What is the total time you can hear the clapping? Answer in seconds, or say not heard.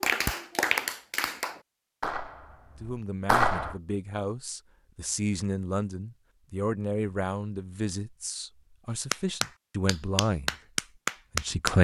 6 s.